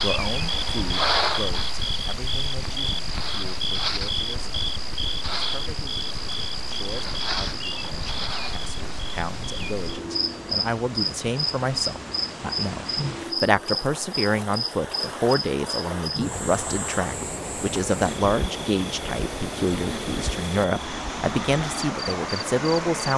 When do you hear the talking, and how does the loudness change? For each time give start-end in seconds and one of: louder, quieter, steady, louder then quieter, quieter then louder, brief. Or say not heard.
0.0-4.5 quieter
5.3-23.1 louder.